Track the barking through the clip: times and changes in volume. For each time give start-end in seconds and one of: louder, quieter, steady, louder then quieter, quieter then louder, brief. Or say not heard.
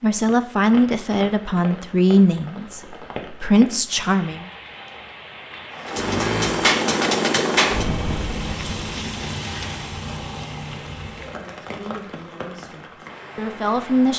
not heard.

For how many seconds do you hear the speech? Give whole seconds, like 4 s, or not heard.
7 s.